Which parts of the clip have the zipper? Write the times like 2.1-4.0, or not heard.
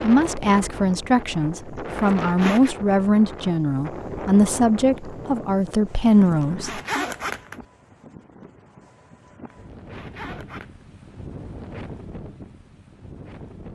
1.9-2.8, 6.2-7.7, 9.4-10.8.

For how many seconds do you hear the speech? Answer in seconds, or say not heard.
7 s.